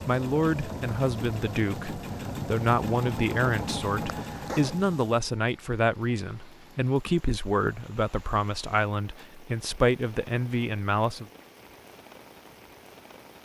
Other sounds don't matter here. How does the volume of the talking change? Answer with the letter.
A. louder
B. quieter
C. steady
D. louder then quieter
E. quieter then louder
C.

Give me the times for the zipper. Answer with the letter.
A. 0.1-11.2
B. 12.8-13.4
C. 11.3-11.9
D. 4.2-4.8
D.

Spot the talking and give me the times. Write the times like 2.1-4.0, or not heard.
0.1-11.2.